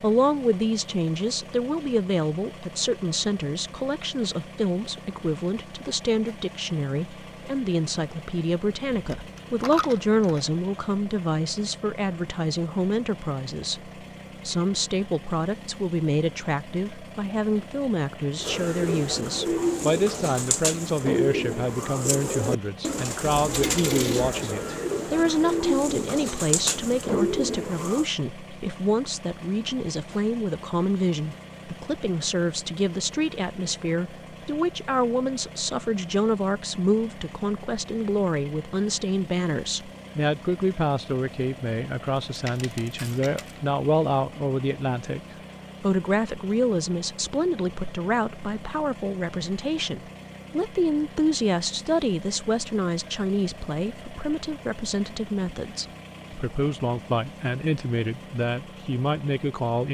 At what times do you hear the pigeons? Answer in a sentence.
The pigeons can be heard from 18.4 to 28.1 s.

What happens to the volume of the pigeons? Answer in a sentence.
The volume of the pigeons stays about the same.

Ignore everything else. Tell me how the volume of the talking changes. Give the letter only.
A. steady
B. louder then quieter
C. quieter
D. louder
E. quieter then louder
A.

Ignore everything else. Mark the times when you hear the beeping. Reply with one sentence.
The beeping can't be heard in this clip.